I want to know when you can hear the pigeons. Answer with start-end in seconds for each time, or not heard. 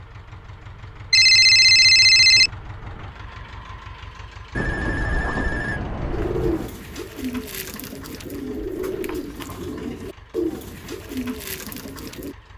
6.1-12.3.